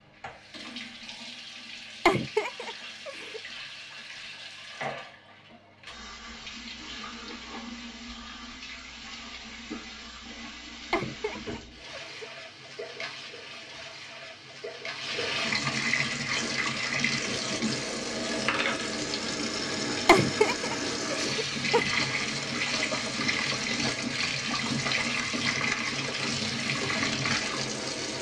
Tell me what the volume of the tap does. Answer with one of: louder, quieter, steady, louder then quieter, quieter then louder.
louder.